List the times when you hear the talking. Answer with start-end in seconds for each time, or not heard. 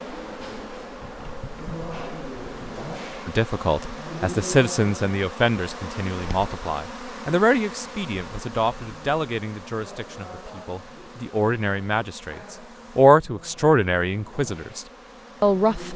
3.2-14.8, 15.4-15.9.